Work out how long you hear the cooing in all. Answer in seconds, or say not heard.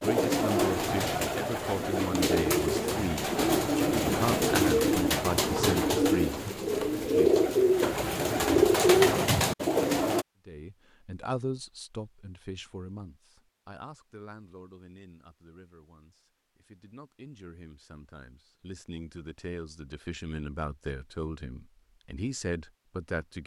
10 s.